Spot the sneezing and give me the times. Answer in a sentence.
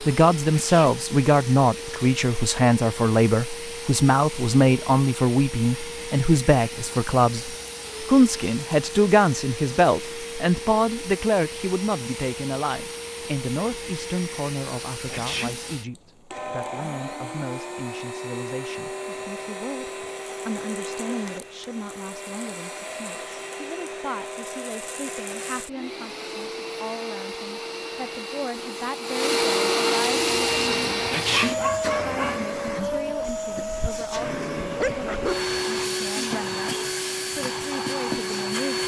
You can hear the sneezing from 0.5 to 1.0 s, from 15.1 to 15.7 s and from 31.1 to 31.6 s.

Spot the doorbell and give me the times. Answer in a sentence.
The doorbell can't be heard in this clip.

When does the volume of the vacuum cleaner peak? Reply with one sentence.
The volume of the vacuum cleaner peaks at 30 seconds.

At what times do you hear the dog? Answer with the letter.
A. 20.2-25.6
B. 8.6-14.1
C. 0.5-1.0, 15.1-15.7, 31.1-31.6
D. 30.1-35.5
D.